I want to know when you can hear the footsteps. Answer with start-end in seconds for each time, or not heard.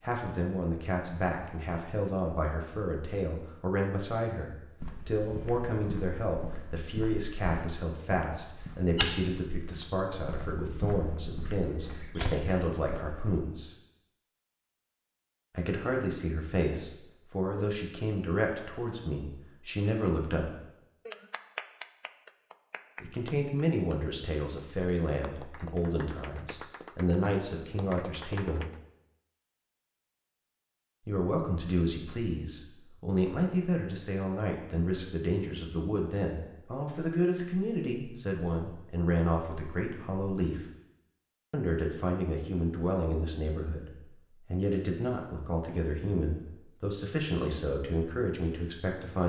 4.8-13.3.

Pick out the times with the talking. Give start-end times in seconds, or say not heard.
0.0-13.8, 15.5-20.6, 23.0-28.6, 31.1-40.6, 41.5-49.2.